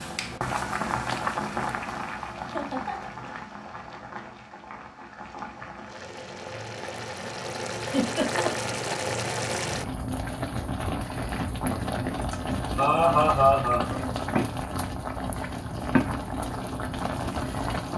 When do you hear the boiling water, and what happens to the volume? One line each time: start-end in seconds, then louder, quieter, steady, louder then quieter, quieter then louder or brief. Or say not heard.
0.0-17.9 quieter then louder.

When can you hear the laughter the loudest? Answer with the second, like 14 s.
13 s.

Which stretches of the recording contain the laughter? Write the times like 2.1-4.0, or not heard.
2.5-3.1, 7.8-8.8, 12.2-13.9.